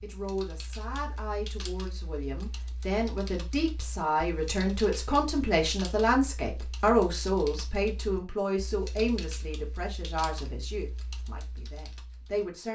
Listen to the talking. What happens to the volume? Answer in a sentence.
The loudness of the talking goes up, then down.